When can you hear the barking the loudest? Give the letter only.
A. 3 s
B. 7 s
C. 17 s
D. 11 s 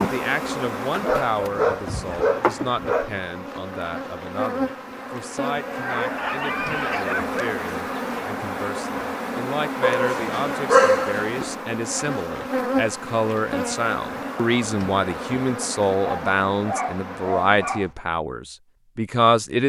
D.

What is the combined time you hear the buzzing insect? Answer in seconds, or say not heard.
18 s.